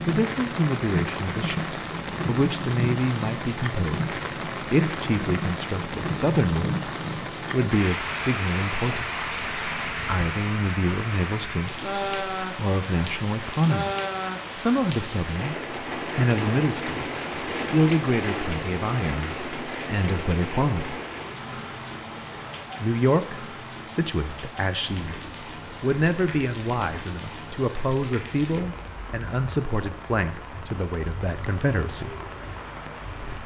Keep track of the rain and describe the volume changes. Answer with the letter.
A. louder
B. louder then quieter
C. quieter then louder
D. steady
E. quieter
E.